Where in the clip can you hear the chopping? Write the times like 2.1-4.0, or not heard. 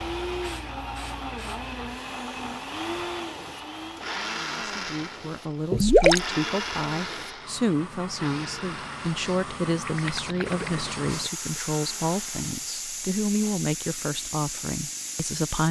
not heard.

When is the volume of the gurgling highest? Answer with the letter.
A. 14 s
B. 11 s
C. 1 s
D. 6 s
D.